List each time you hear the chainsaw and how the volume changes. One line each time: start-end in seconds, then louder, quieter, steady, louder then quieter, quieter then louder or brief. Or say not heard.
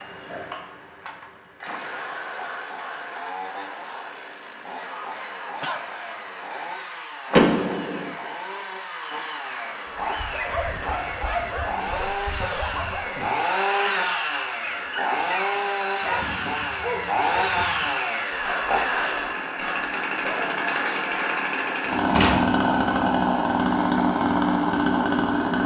0.0-25.6 louder.